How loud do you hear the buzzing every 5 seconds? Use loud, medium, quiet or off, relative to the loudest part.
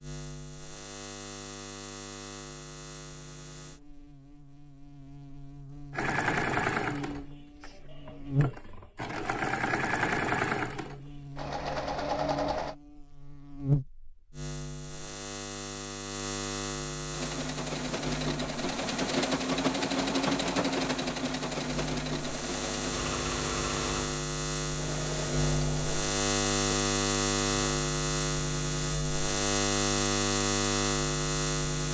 quiet, medium, medium, medium, medium, loud, loud.